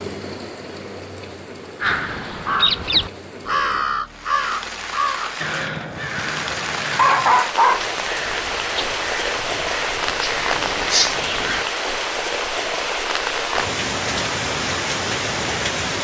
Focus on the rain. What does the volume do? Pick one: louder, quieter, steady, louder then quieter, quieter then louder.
louder.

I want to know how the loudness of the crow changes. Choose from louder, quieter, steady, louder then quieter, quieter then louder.
quieter then louder.